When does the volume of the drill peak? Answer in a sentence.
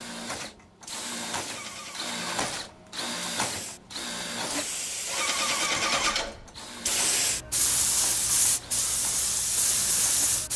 The volume of the drill peaks at 3 seconds.